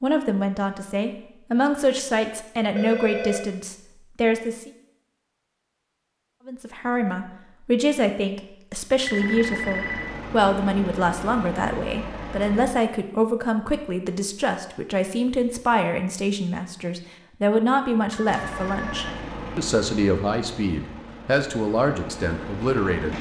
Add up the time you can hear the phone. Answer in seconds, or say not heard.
3 s.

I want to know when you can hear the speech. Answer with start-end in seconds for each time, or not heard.
0.0-4.7, 6.5-23.1.